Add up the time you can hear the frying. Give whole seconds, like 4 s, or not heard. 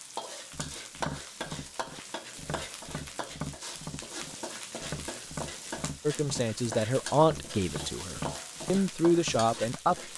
10 s.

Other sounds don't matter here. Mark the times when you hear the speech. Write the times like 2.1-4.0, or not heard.
6.0-10.1.